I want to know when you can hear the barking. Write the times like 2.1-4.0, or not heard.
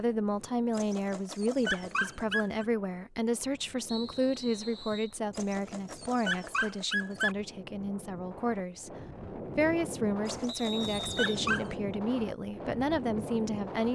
0.7-2.6, 5.3-7.3, 10.2-11.8.